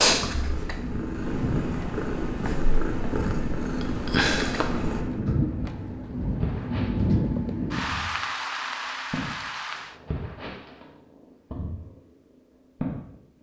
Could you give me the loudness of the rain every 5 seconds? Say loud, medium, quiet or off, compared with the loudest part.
medium, loud, off.